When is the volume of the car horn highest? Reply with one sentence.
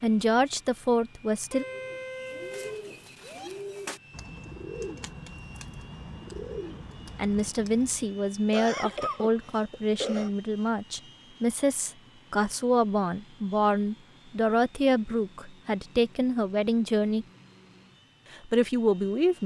The loudest moment of the car horn is at 2 seconds.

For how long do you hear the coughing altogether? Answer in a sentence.
The coughing can be heard for 2 seconds in total.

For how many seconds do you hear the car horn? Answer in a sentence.
You can hear the car horn for 2 seconds altogether.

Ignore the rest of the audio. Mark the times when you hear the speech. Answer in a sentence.
You can hear the speech from 0.0 to 1.6 s, from 7.2 to 17.2 s and from 18.3 to 19.4 s.